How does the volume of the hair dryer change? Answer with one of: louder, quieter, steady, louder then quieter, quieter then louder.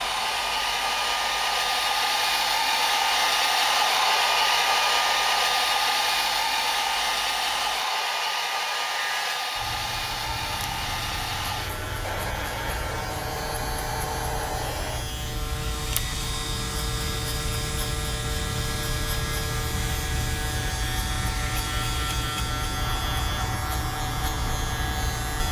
quieter.